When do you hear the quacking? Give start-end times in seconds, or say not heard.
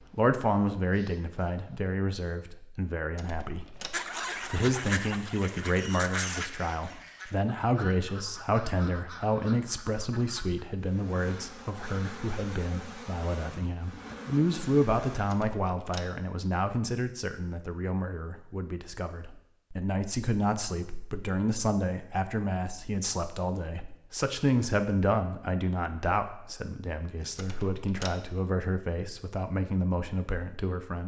3.9-10.7.